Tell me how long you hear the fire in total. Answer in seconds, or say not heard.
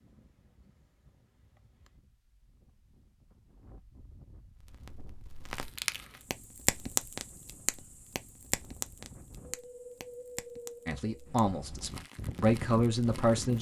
9 s.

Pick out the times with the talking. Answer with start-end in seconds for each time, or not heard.
10.8-13.5.